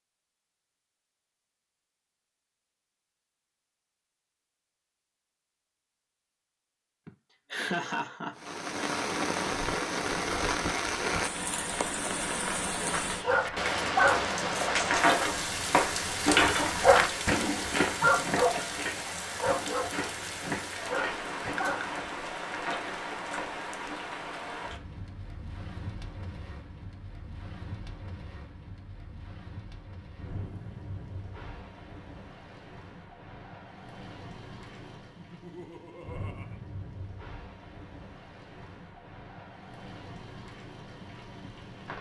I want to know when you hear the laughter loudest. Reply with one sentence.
The loudest moment of the laughter is at 8 seconds.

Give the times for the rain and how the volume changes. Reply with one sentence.
You can hear the rain from 8.3 to 41.9 s, getting quieter.